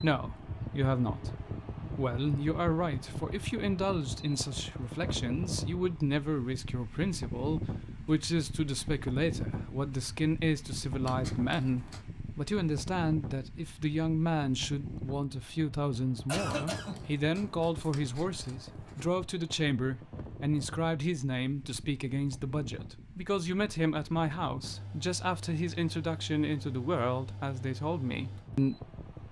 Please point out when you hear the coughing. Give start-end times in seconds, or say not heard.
16.2-17.0.